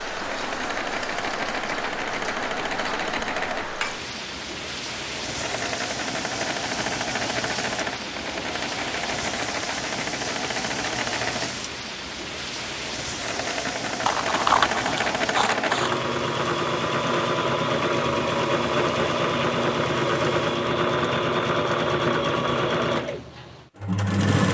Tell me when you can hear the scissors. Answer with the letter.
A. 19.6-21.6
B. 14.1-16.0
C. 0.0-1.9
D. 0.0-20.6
B.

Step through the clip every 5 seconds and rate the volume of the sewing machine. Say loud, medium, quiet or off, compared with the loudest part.
medium, medium, medium, loud, loud.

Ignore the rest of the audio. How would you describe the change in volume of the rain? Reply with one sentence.
The volume of the rain goes down.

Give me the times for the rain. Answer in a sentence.
You can hear the rain from 0.0 to 20.6 s.